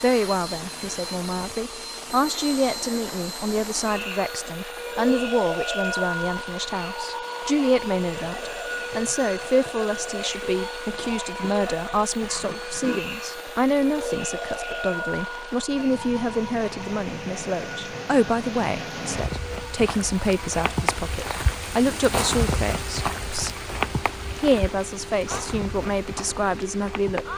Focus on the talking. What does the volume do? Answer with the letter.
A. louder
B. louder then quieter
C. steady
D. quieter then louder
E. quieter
C.